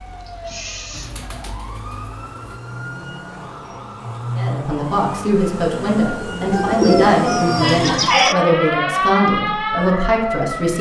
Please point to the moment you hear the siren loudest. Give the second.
9 s.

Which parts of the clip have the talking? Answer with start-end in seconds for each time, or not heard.
4.3-10.7.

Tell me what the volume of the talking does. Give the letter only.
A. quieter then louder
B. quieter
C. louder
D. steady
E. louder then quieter
D.